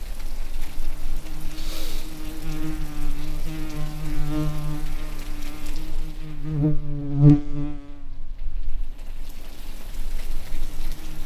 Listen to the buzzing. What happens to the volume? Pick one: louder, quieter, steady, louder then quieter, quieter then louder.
louder then quieter.